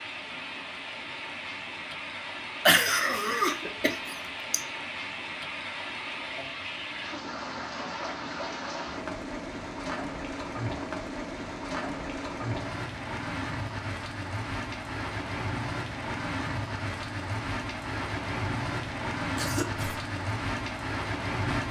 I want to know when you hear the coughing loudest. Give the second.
3 s.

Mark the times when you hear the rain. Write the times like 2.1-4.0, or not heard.
0.0-21.6.